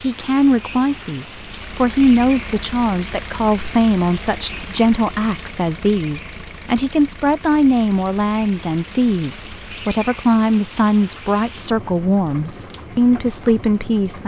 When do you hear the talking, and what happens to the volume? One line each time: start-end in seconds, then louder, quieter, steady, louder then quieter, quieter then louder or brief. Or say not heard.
0.0-14.2 steady.